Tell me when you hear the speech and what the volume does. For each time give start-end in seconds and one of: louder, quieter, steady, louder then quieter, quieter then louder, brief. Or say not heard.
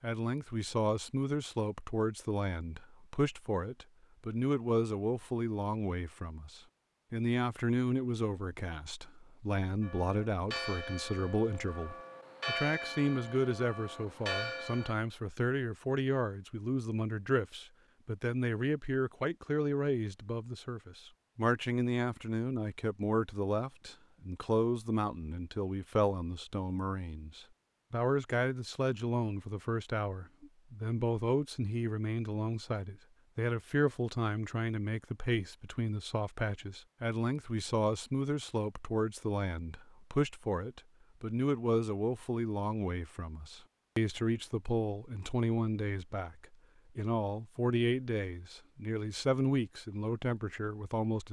0.0-51.2 steady.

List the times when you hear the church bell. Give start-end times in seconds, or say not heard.
9.8-14.9.